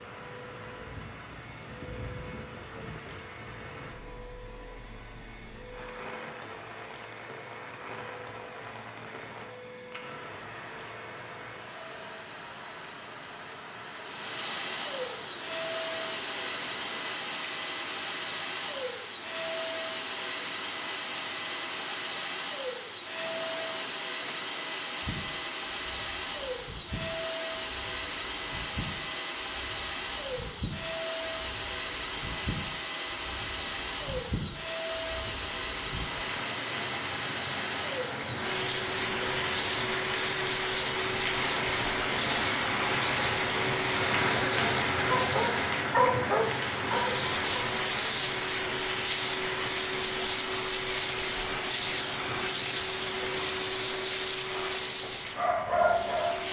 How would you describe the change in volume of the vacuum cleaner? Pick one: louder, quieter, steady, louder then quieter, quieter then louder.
louder.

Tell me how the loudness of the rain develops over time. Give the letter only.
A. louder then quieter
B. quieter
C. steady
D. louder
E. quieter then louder
D.